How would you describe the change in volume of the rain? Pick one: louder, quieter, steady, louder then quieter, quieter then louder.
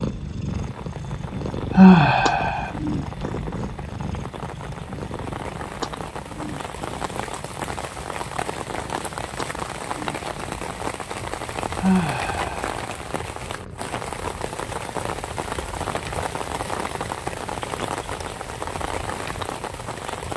louder.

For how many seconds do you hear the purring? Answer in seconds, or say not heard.
20 s.